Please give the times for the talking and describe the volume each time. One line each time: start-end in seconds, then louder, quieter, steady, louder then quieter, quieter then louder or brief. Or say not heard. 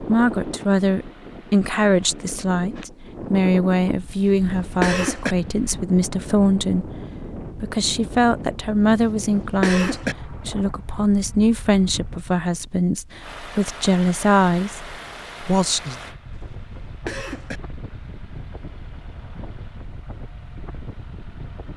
0.0-15.9 steady.